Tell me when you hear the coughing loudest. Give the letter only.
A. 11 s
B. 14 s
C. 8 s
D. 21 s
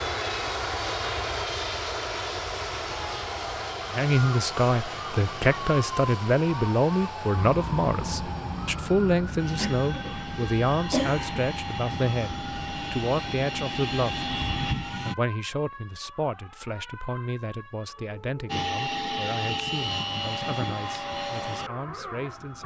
A.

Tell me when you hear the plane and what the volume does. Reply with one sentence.
The plane can be heard from 0.0 to 15.2 s, getting quieter then louder; and from 18.4 to 22.6 s, getting quieter.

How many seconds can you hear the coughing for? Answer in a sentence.
The coughing can be heard for 2 seconds in total.